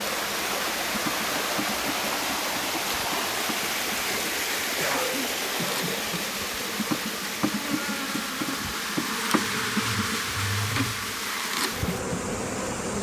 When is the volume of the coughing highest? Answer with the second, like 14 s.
5 s.